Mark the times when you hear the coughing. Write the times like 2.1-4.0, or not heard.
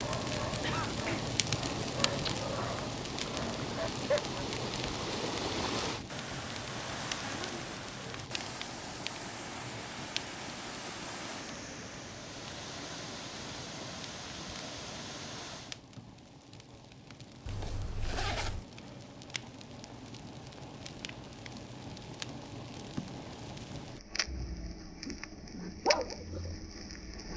0.6-1.2.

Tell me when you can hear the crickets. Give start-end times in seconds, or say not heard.
not heard.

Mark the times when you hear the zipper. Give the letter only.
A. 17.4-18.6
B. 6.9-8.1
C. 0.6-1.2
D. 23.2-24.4
A.